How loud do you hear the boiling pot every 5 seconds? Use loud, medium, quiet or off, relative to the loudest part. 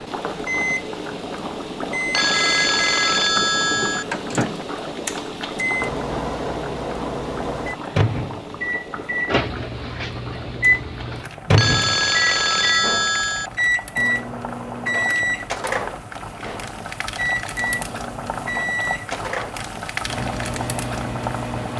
loud, loud, medium, loud, loud.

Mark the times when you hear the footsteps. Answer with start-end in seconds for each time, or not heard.
not heard.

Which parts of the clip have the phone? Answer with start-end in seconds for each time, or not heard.
2.1-4.0, 11.6-13.5.